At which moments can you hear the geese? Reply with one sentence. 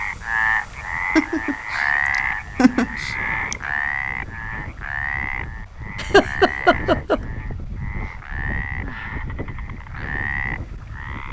The geese can't be heard in this clip.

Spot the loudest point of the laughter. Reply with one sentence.
The loudest moment of the laughter is at 6 seconds.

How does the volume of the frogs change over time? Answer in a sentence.
The loudness of the frogs goes down.